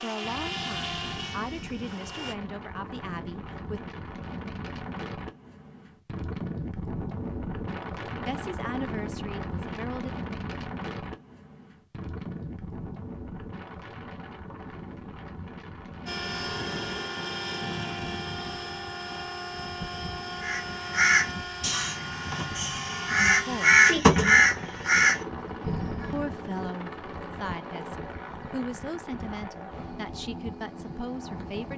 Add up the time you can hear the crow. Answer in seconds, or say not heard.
6 s.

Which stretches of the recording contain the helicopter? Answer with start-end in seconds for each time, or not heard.
0.0-2.4, 16.1-31.7.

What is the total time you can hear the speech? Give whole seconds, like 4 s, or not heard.
12 s.